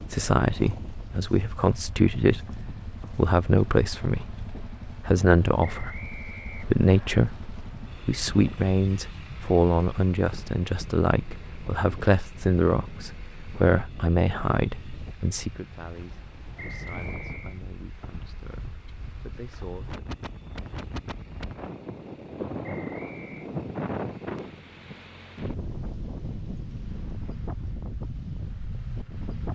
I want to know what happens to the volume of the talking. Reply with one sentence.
The volume of the talking goes down.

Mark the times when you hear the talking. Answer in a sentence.
You can hear the talking from 0.0 to 20.1 s.